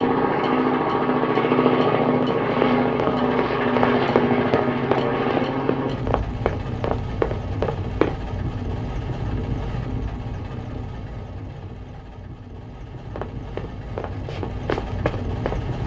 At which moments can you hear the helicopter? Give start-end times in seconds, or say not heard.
0.0-15.8.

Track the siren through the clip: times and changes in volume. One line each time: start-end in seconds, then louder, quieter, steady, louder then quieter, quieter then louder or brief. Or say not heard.
not heard.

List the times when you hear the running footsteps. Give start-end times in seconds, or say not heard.
2.0-8.2, 13.1-15.8.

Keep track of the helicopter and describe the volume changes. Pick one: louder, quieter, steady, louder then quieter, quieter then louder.
quieter.